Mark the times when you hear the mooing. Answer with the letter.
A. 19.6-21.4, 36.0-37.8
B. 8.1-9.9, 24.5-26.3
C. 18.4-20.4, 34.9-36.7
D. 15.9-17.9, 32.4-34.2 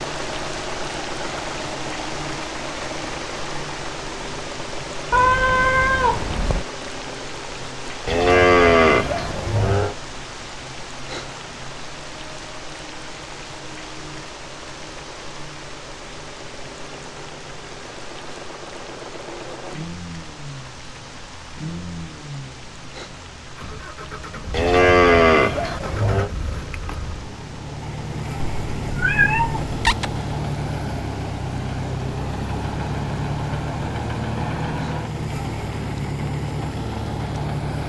B.